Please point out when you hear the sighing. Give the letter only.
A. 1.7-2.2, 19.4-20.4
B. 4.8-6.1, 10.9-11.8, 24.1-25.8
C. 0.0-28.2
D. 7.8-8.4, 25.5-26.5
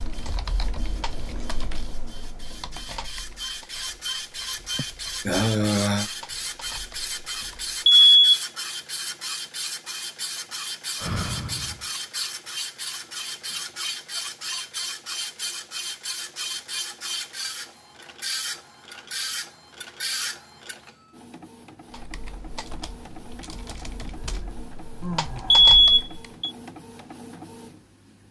B.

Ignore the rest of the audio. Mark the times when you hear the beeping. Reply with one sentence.
The beeping can be heard from 7.8 to 8.4 s and from 25.5 to 26.5 s.